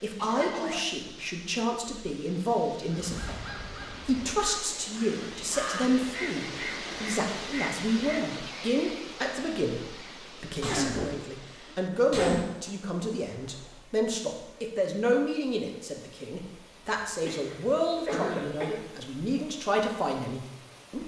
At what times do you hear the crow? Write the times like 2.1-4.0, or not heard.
2.9-8.4.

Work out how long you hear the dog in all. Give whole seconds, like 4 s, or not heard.
not heard.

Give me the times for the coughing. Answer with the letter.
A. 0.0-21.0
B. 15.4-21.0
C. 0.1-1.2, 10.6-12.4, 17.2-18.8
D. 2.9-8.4
C.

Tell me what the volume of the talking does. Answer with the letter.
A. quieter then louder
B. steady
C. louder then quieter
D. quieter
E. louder
B.